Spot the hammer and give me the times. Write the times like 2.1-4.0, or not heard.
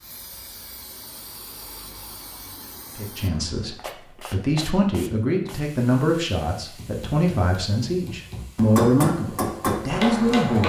6.7-10.6.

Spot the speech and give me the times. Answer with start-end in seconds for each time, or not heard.
3.0-10.6.